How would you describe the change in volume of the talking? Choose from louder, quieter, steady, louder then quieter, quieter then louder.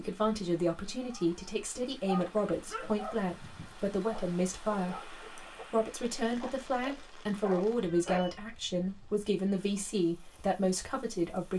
steady.